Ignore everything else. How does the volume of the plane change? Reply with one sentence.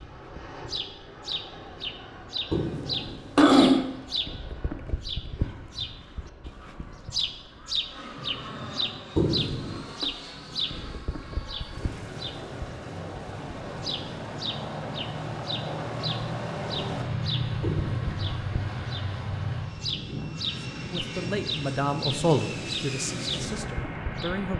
The volume of the plane goes up.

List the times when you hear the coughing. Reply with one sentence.
You can hear the coughing from 2.5 to 3.9 s, from 9.2 to 10.1 s and from 17.6 to 18.2 s.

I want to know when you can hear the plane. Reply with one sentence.
You can hear the plane from 0.0 to 24.5 s.